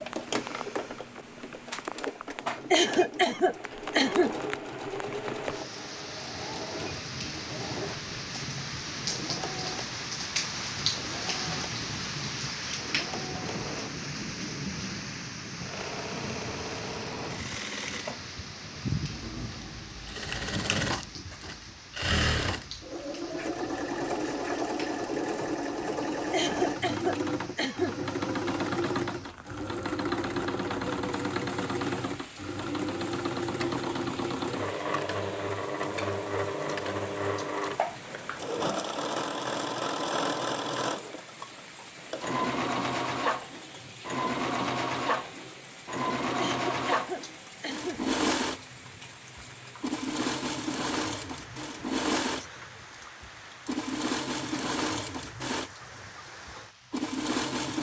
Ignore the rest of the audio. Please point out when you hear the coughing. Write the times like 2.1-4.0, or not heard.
2.7-4.3, 26.3-27.9, 46.4-48.0.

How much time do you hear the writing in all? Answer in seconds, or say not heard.
not heard.